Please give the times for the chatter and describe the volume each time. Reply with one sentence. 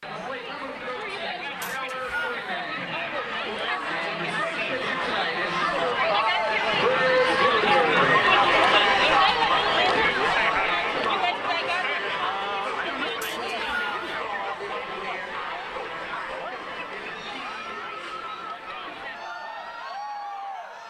You can hear the chatter from 0.0 to 20.8 s, getting louder then quieter.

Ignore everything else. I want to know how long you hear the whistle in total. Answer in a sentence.
You can hear the whistle for 2 seconds altogether.